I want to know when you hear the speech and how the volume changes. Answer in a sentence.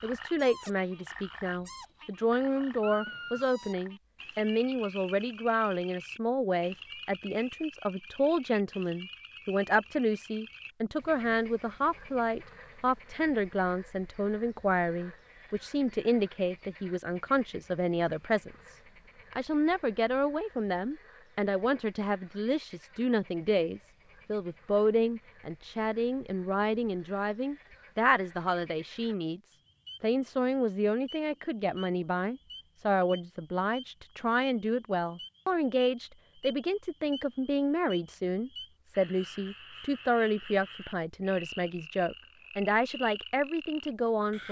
You can hear the speech from 0.0 to 44.4 s, at a steady volume.